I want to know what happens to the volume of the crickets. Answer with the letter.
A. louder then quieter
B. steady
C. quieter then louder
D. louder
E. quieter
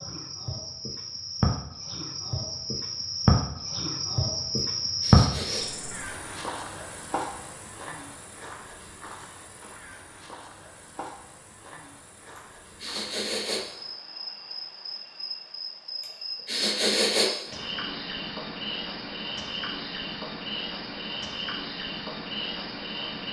C.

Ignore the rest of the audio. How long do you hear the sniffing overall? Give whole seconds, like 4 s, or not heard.
4 s.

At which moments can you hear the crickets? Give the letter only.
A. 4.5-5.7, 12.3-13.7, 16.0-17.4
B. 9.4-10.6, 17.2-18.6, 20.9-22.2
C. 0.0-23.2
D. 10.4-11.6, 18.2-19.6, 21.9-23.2
C.